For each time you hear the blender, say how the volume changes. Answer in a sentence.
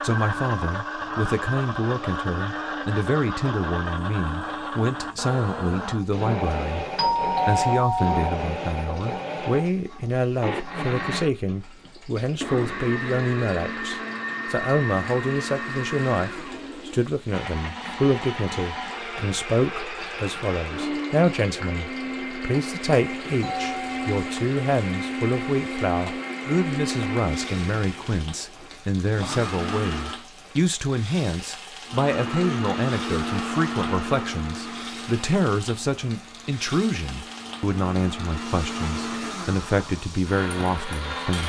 You can hear the blender from 0.0 to 30.2 s, at a steady volume; and from 31.9 to 41.4 s, getting quieter then louder.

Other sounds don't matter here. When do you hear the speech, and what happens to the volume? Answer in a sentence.
The speech can be heard from 0.0 to 6.8 s, at a steady volume; and from 7.5 to 41.4 s, at a steady volume.